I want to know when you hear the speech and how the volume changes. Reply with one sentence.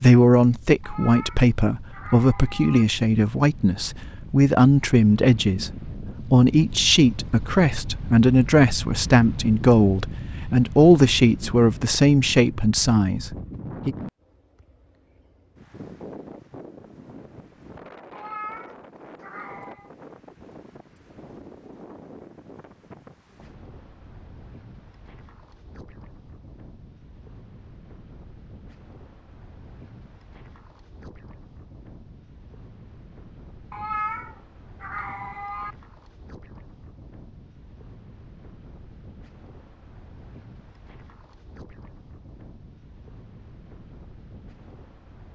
You can hear the speech from 0.0 to 13.9 s, at a steady volume.